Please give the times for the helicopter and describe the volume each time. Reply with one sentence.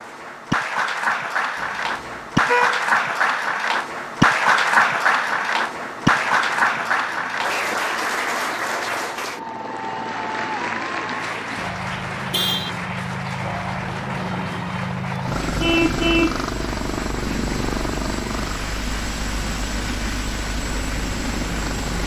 You can hear the helicopter from 5.2 to 22.0 s, getting louder.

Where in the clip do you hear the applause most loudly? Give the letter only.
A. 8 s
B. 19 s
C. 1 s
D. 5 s
D.